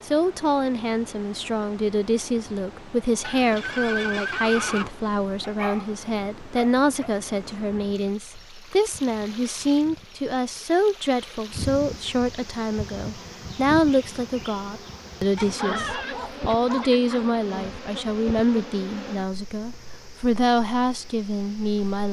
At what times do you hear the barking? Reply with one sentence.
The barking can be heard from 5.4 to 7.1 s and from 15.3 to 17.3 s.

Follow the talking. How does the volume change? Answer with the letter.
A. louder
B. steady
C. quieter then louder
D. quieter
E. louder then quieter
B.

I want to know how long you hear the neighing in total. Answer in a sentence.
You can hear the neighing for 2 seconds altogether.